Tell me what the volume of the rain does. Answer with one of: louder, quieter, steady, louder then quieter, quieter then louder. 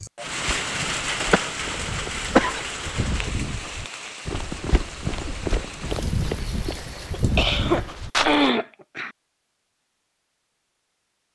quieter.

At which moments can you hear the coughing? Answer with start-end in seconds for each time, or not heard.
1.3-3.3, 7.1-9.1.